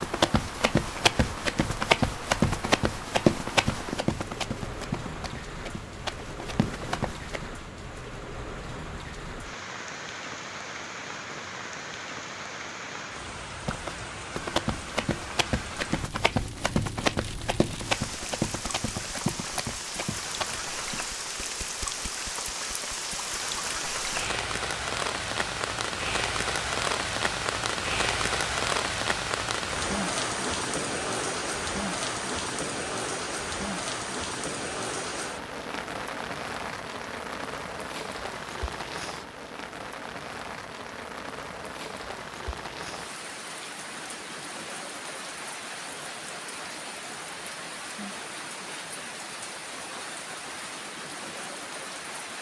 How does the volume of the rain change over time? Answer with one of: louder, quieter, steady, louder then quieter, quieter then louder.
louder then quieter.